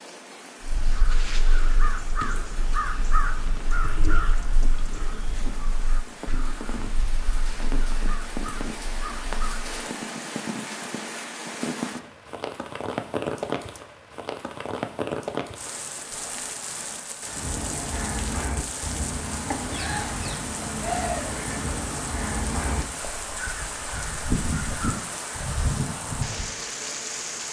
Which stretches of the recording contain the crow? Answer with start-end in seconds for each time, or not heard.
0.6-9.8, 17.2-26.5.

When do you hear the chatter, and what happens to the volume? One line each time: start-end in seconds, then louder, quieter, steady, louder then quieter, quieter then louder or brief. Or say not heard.
not heard.